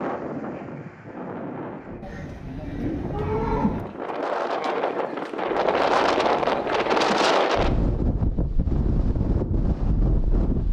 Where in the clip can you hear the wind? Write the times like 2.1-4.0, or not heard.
0.0-10.6.